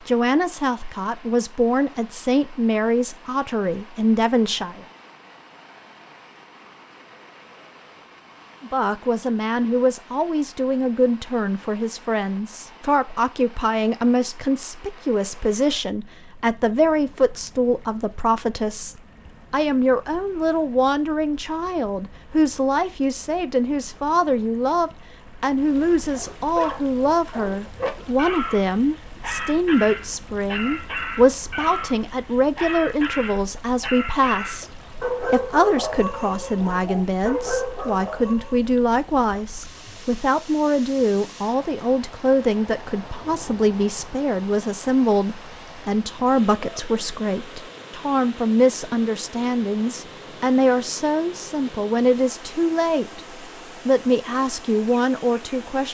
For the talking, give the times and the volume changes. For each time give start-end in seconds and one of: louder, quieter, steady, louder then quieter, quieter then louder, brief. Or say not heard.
0.1-4.8 louder
8.6-55.8 steady.